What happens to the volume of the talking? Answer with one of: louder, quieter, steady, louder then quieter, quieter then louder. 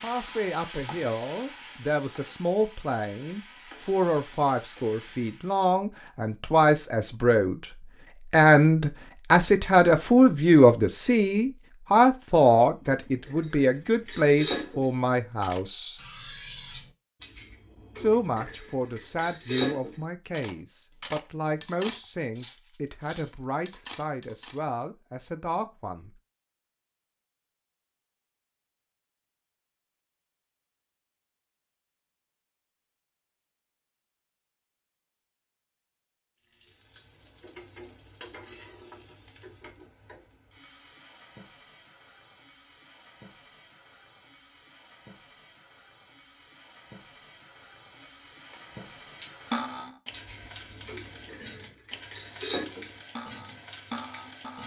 louder then quieter.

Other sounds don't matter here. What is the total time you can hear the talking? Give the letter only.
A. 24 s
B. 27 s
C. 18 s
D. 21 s
A.